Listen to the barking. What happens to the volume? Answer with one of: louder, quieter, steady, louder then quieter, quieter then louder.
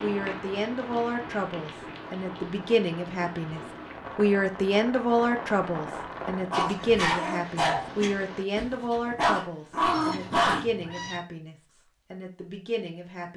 quieter then louder.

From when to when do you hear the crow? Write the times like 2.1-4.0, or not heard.
not heard.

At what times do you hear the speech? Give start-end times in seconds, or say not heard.
0.0-13.3.